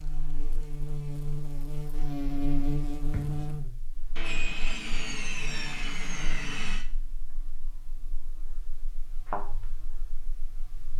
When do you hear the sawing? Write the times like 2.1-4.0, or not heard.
4.2-6.8.